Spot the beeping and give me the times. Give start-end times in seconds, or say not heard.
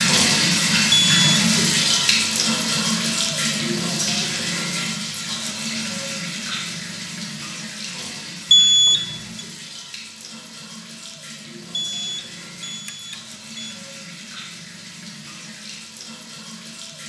0.9-1.4, 8.5-9.4, 11.7-13.8.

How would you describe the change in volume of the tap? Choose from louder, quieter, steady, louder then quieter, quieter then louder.
quieter.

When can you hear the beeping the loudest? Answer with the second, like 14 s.
9 s.